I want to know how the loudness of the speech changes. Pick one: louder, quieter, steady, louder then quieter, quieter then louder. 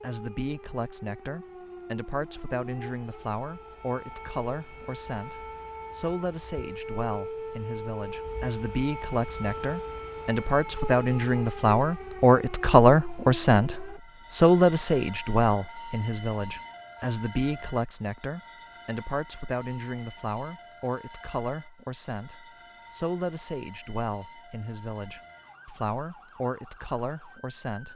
louder then quieter.